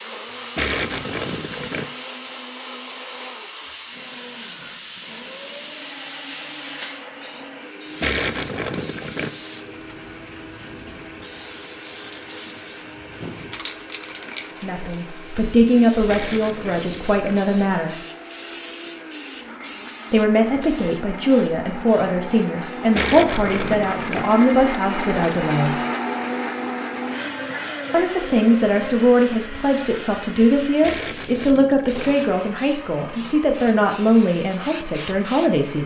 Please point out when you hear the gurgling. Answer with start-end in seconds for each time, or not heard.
0.6-1.9, 8.0-9.3, 16.1-17.4, 22.9-24.2, 30.8-32.1.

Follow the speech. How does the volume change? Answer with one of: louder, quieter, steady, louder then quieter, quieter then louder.
steady.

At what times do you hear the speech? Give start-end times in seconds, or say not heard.
14.6-17.9, 20.1-25.8, 27.9-35.8.